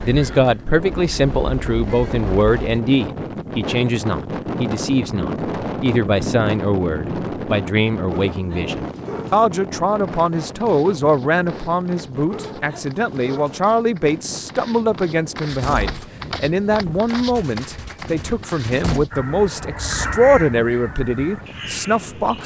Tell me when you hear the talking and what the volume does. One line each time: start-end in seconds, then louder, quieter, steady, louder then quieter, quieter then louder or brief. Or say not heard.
0.0-22.4 steady.